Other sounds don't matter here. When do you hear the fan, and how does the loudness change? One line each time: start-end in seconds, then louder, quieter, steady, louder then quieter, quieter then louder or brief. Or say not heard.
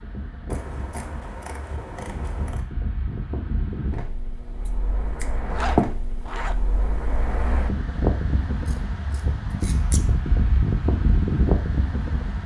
0.0-12.4 louder.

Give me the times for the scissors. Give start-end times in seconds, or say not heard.
0.5-2.6, 4.7-5.9, 8.7-10.0.